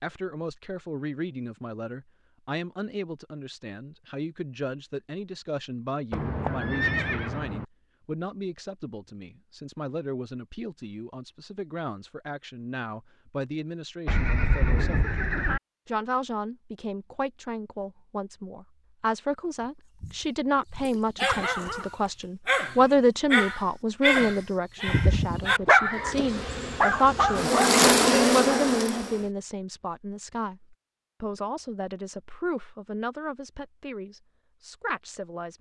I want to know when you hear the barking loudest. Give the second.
26 s.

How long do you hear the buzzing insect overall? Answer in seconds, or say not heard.
3 s.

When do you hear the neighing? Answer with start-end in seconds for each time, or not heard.
6.1-7.7, 14.1-15.6, 24.9-26.1.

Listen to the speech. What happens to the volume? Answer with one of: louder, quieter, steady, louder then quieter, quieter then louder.
louder then quieter.